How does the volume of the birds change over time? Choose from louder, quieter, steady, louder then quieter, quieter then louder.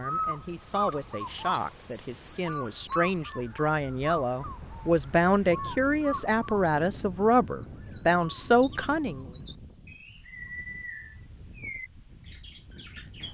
quieter.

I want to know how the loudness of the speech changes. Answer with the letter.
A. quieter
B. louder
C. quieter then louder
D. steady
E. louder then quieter
B.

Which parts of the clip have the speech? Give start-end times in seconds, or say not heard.
0.0-9.2.